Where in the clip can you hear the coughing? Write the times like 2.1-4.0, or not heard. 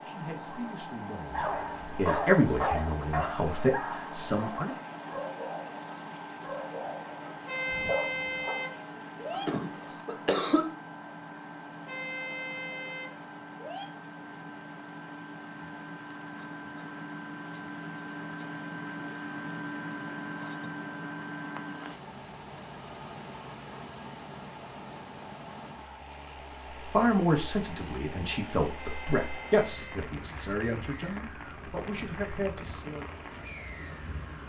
9.3-10.8.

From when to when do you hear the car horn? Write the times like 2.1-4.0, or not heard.
7.5-9.4, 11.8-13.8, 28.8-30.1.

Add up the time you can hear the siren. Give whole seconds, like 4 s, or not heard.
not heard.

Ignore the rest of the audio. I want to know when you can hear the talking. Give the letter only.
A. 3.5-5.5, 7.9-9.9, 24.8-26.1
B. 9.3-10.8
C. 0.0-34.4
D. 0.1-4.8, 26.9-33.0
D.